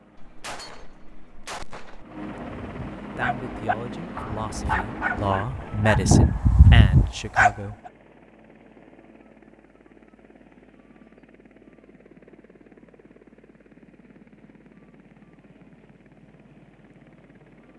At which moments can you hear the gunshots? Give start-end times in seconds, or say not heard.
0.1-2.0.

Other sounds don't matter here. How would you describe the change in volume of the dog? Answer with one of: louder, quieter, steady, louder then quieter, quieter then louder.
louder.